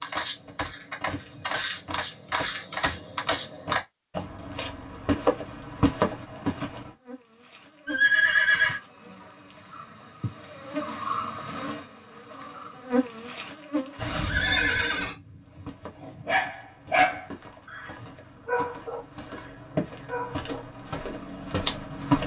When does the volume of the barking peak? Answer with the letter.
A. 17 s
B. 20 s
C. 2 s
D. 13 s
A.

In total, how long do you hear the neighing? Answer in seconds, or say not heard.
2 s.